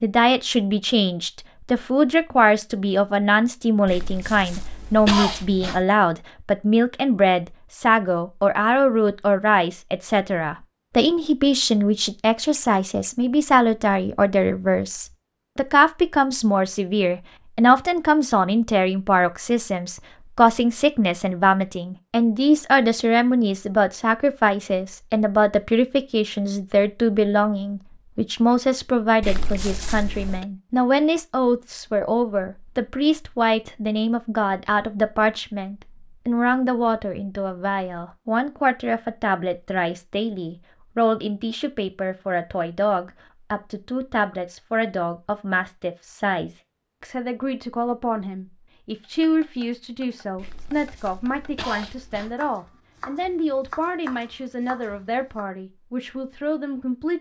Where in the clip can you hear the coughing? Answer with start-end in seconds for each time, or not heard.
3.9-5.8, 29.2-30.4, 50.4-52.4.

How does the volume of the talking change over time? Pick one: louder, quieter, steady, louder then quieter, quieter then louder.
quieter.